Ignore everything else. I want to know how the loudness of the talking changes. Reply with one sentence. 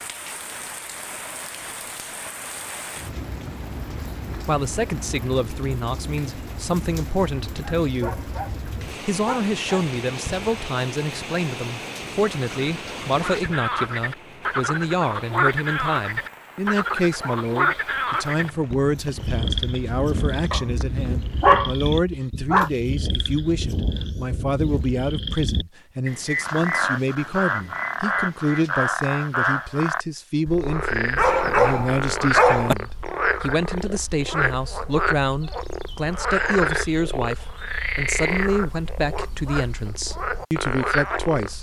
The volume of the talking stays about the same.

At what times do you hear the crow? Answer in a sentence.
The crow can't be heard in this clip.